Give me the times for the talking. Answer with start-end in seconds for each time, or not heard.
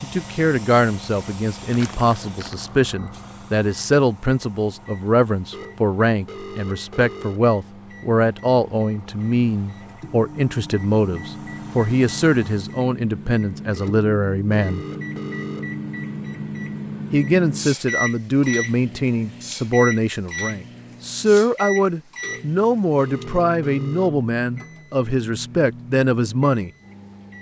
0.0-14.8, 17.1-26.7.